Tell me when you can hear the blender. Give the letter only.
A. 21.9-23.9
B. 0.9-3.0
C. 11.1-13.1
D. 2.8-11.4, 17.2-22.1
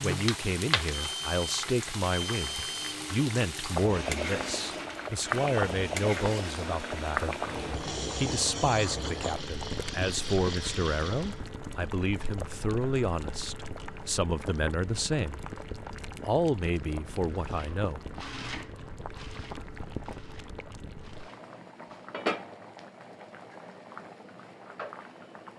D.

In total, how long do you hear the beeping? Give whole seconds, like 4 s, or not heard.
2 s.